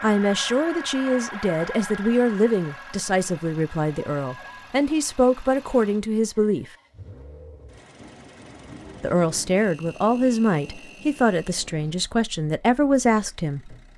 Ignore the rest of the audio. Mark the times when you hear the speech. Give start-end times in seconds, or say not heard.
0.0-6.7, 9.0-13.8.